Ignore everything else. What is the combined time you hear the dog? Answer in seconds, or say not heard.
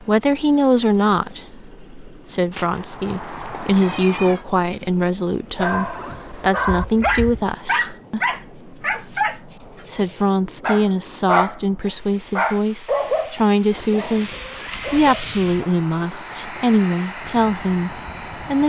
10 s.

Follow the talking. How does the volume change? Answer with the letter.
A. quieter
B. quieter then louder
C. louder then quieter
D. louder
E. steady
E.